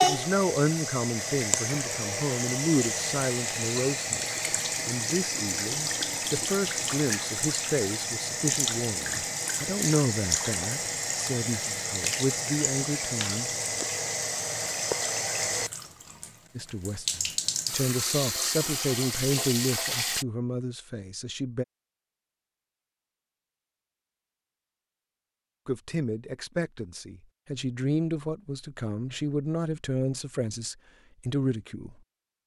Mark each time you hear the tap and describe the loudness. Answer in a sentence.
You can hear the tap from 0.0 to 20.2 s, at a steady volume.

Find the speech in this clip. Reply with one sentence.
You can hear the speech from 0.0 to 13.5 s, from 16.6 to 21.6 s and from 25.6 to 32.4 s.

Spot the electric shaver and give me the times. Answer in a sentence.
The electric shaver can't be heard in this clip.